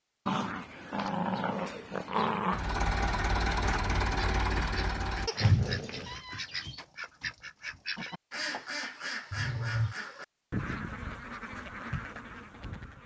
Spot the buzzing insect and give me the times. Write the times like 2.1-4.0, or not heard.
not heard.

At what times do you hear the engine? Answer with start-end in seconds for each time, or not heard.
2.5-5.3.